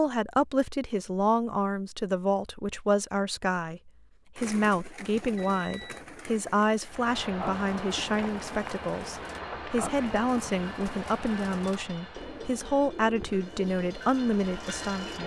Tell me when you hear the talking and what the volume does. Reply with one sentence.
You can hear the talking from 0.0 to 15.2 s, at a steady volume.